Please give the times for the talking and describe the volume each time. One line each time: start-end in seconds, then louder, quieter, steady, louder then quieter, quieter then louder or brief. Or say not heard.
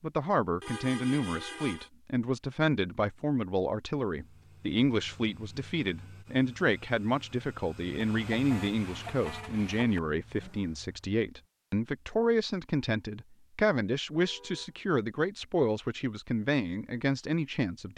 0.0-17.9 steady.